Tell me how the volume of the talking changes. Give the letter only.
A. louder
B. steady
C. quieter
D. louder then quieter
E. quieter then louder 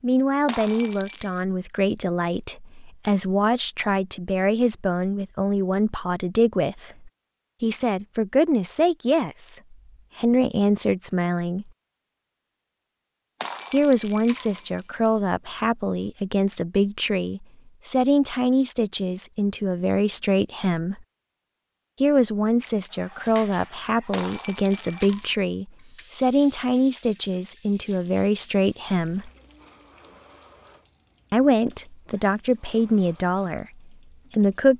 B.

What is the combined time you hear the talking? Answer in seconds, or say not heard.
30 s.